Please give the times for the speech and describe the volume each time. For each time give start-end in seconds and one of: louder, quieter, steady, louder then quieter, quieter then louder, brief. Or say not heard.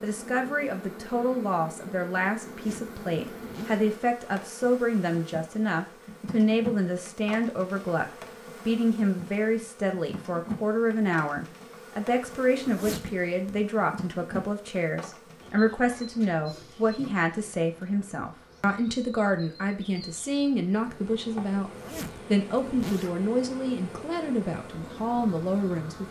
0.0-26.0 steady.